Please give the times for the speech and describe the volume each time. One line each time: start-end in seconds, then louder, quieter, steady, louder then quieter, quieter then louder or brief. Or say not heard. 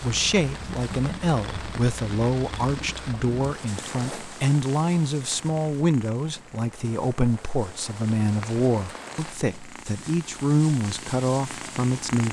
0.0-12.2 steady.